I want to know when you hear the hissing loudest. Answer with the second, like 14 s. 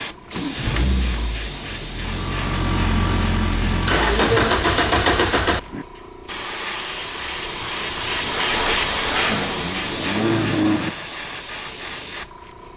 9 s.